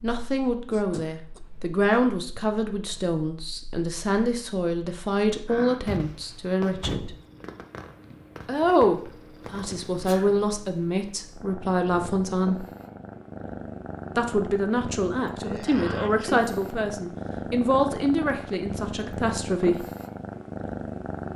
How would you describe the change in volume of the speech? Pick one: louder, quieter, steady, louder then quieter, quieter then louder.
steady.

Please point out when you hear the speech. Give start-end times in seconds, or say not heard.
0.0-7.2, 8.4-12.7, 14.2-19.9.